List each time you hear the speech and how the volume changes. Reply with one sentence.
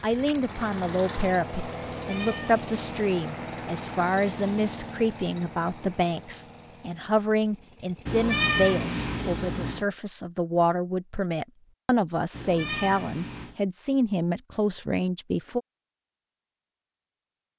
The speech can be heard from 0.0 to 15.6 s, at a steady volume.